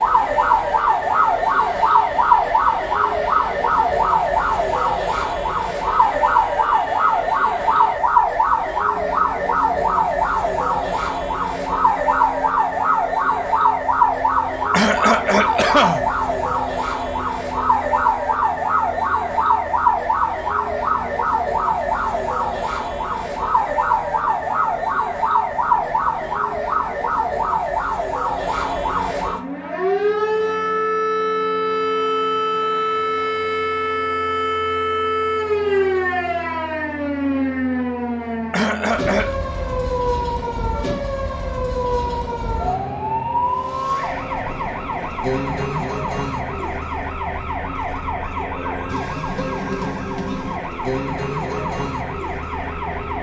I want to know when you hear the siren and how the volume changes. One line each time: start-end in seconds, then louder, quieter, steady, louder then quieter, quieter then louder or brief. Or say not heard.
0.0-53.1 quieter.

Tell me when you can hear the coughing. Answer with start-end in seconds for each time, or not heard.
14.7-16.6, 38.5-39.4.